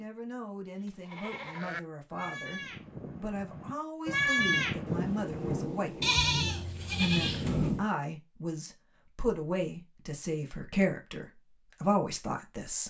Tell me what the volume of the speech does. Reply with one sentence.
The volume of the speech goes up.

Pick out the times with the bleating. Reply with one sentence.
You can hear the bleating from 0.8 to 7.8 s.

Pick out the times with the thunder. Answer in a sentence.
The thunder can be heard from 4.8 to 7.8 s.